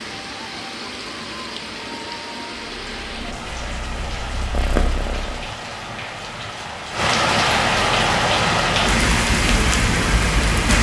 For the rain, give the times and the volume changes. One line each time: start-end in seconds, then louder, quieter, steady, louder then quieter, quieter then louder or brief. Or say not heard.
0.0-10.7 louder.